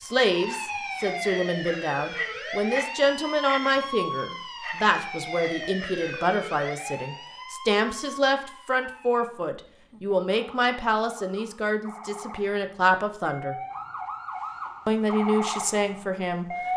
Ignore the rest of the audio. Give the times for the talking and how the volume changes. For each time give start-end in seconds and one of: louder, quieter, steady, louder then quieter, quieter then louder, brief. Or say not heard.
0.0-13.6 steady
14.8-16.6 brief.